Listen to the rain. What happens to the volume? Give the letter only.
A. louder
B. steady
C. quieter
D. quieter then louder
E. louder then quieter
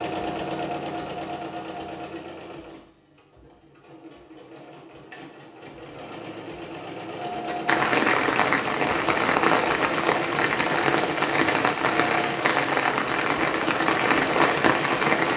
B.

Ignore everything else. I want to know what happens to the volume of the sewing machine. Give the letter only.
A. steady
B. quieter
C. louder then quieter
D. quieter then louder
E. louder
D.